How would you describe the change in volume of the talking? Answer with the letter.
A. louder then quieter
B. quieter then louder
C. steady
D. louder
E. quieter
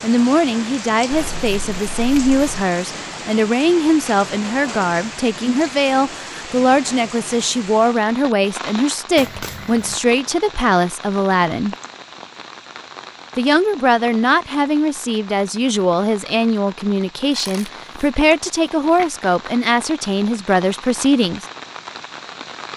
C.